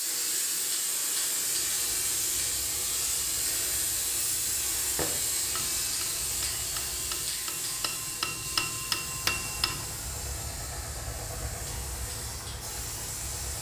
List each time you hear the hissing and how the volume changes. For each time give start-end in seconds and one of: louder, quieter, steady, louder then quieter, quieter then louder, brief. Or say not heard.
0.0-13.5 quieter.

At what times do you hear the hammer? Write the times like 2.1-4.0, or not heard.
5.0-9.8.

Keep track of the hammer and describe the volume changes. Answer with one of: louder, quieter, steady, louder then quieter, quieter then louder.
louder.